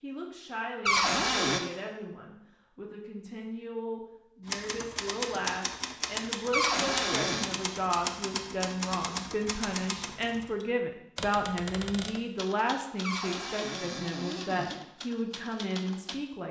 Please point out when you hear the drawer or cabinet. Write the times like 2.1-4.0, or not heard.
0.8-1.6, 6.5-7.5, 13.0-14.8.